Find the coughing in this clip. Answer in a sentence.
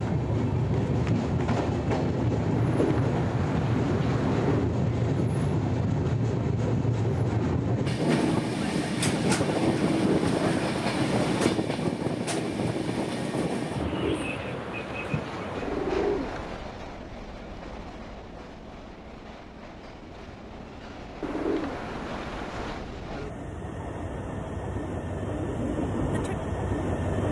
The coughing can't be heard in this clip.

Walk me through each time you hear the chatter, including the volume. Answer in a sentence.
You can't hear the chatter here.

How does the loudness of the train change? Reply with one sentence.
The volume of the train goes down, then up.